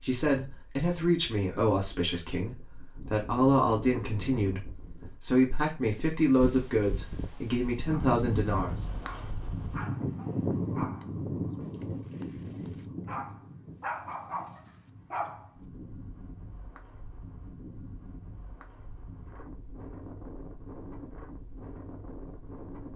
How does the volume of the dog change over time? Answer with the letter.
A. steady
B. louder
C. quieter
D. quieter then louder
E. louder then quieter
B.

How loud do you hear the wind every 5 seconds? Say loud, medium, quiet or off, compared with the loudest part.
medium, loud, loud, quiet, medium.